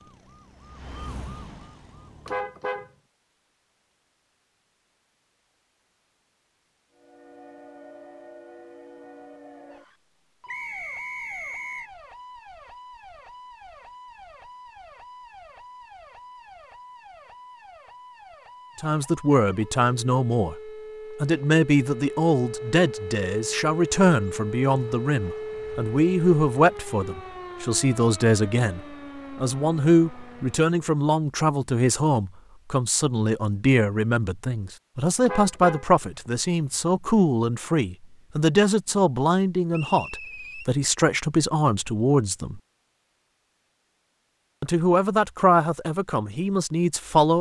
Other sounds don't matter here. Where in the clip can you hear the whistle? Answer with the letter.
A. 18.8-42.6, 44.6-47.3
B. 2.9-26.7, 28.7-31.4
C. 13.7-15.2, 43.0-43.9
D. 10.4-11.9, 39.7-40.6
D.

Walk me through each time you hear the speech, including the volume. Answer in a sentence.
The speech can be heard from 18.8 to 42.6 s, at a steady volume; and briefly from 44.6 to 47.3 s.